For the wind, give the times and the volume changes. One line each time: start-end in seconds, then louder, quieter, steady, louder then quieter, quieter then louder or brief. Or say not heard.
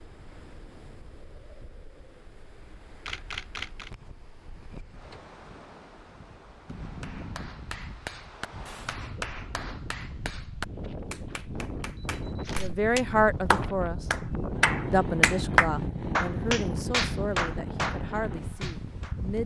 0.0-19.4 louder.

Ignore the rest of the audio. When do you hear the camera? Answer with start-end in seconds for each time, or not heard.
3.0-3.9, 12.0-12.7.